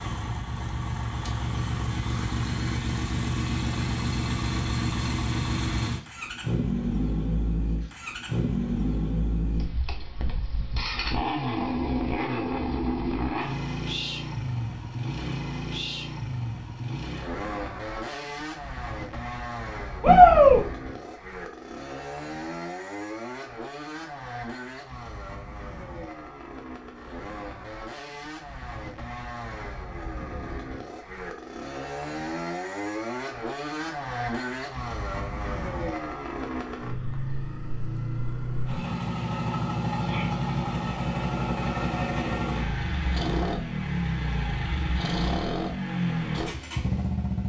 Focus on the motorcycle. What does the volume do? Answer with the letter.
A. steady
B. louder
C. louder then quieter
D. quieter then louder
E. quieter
D.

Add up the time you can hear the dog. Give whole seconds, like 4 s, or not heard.
not heard.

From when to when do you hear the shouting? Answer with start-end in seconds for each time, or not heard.
20.0-20.6, 40.0-40.4.